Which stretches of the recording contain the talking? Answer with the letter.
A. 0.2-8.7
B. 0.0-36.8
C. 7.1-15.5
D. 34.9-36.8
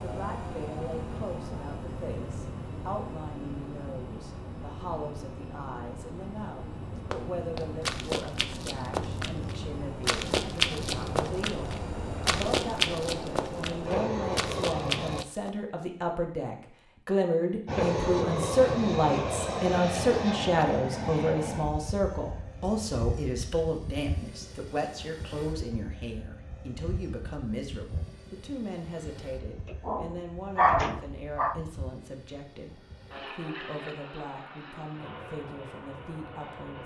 B.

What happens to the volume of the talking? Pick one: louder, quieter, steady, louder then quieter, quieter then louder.
louder then quieter.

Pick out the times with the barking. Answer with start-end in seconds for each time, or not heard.
29.6-31.6.